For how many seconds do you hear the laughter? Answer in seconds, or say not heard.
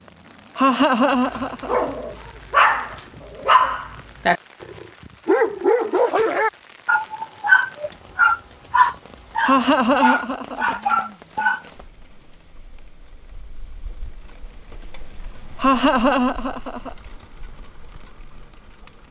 4 s.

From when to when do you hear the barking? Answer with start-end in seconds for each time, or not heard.
1.3-11.7.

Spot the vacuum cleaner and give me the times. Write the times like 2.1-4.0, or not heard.
not heard.